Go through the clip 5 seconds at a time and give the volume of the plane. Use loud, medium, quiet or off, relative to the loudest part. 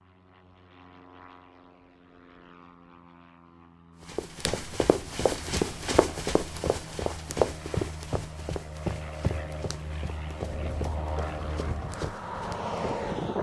quiet, medium, loud.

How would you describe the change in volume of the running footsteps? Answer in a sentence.
The volume of the running footsteps goes down.